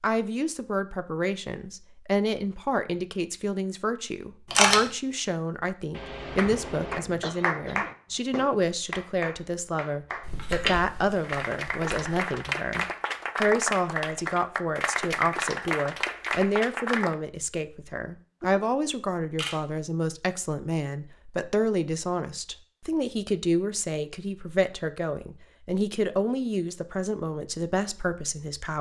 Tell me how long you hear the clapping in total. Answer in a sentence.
The clapping can be heard for 11 seconds in total.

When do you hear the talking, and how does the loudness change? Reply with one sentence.
The talking can be heard from 0.0 to 28.7 s, at a steady volume.